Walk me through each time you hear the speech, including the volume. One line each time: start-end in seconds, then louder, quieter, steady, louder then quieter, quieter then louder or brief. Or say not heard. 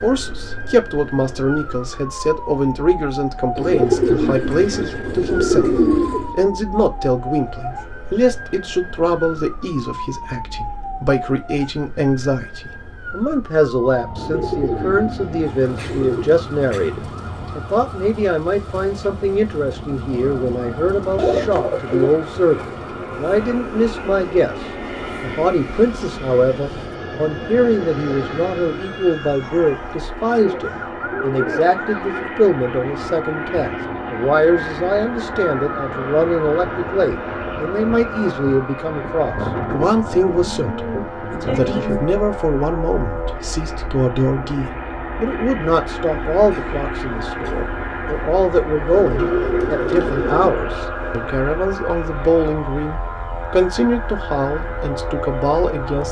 0.0-56.0 steady.